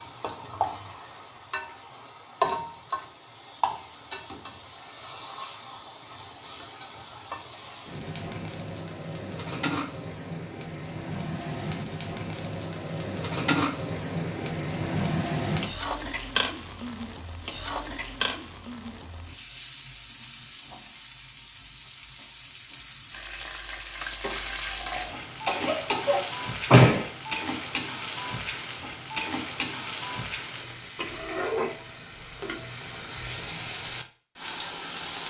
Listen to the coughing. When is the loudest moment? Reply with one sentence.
The volume of the coughing peaks at 26 seconds.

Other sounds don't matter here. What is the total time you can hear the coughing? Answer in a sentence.
The coughing can be heard for 2 seconds in total.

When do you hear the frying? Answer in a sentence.
The frying can be heard from 0.0 to 35.2 s.